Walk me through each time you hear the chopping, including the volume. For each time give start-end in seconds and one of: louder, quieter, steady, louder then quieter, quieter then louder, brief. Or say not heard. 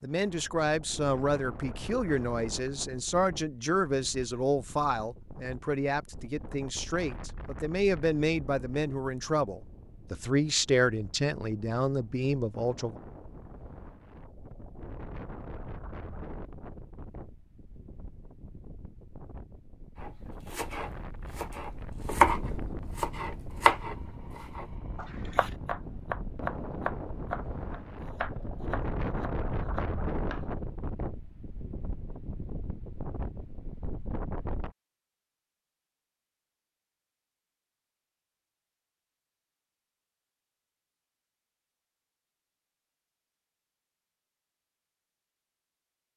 19.9-30.6 quieter.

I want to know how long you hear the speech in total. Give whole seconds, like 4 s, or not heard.
13 s.